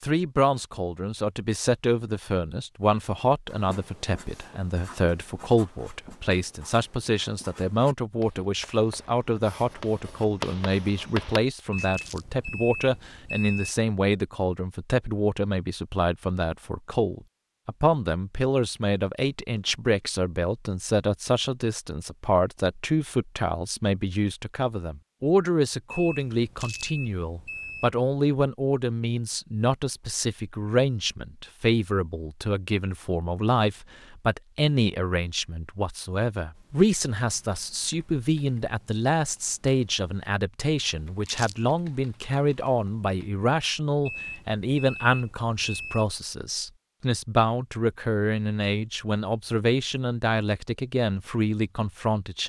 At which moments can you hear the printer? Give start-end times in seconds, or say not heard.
not heard.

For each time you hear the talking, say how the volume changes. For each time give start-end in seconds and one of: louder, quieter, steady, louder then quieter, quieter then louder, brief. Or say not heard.
0.0-52.4 steady.